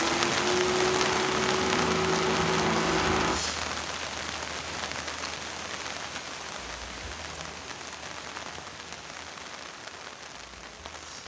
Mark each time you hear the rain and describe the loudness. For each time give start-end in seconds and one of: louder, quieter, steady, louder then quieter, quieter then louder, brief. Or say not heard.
0.0-11.2 quieter.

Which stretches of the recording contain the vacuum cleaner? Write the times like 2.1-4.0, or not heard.
0.0-3.4.